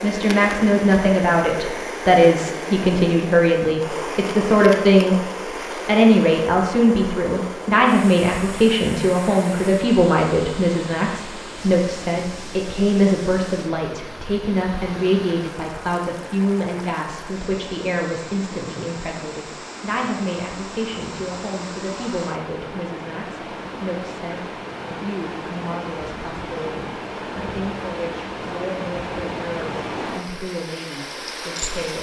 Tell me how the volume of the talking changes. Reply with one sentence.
The loudness of the talking goes down.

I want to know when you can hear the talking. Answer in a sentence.
You can hear the talking from 0.0 to 31.9 s.